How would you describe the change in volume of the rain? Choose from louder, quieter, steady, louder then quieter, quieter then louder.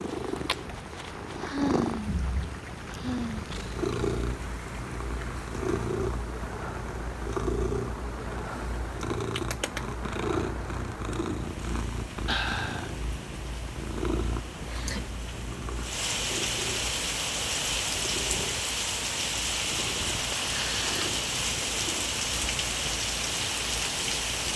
louder.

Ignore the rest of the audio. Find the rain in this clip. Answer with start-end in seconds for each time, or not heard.
0.0-24.5.